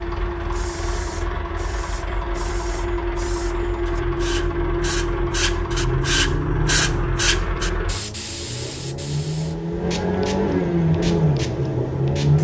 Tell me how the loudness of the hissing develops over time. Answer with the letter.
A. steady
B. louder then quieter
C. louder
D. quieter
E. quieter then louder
B.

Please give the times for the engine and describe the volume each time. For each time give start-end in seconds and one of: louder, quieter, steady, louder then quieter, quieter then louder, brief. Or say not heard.
0.0-12.3 louder.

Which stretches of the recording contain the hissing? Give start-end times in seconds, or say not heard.
0.3-12.3.